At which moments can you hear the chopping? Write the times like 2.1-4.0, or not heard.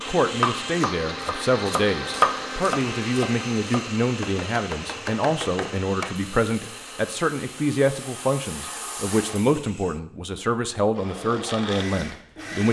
0.0-6.2.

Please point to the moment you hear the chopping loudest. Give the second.
2 s.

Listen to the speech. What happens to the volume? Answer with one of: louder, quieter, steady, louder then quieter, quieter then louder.
steady.